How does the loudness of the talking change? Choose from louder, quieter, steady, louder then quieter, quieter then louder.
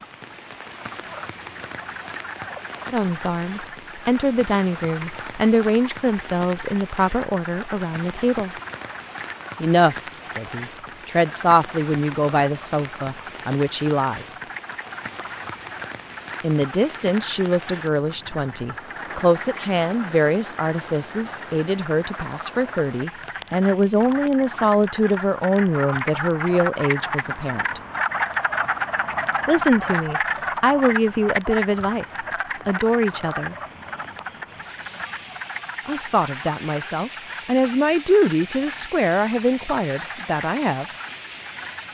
steady.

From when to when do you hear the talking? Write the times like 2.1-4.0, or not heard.
2.9-8.5, 9.6-14.4, 16.4-27.8, 29.4-33.5, 35.9-40.9.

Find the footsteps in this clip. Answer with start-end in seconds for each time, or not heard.
not heard.